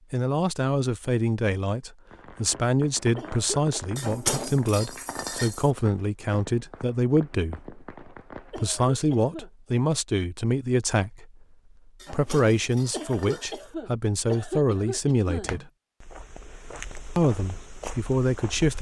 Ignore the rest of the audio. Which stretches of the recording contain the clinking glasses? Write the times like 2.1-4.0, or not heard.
4.0-5.7, 11.9-13.8.